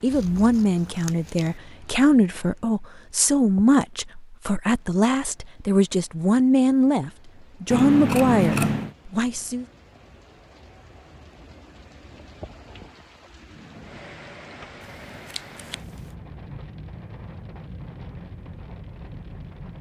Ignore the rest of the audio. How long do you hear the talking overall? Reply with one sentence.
You can hear the talking for 10 seconds altogether.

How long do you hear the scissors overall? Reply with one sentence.
You can hear the scissors for 4 seconds altogether.